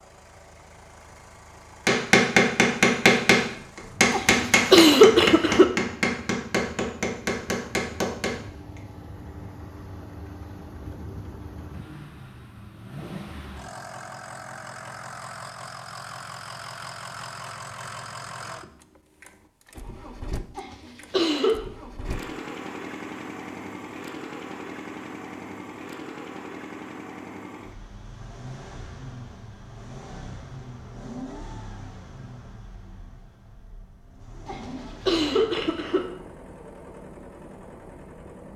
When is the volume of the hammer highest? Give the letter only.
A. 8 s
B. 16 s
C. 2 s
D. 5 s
C.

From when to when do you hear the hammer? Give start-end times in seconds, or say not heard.
1.9-8.8.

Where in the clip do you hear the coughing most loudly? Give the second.
5 s.